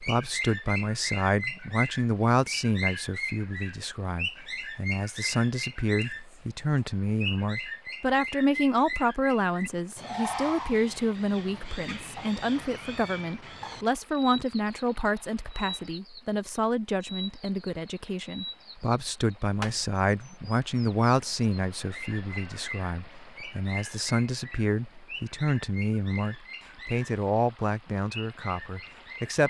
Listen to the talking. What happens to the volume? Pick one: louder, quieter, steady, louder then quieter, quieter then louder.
steady.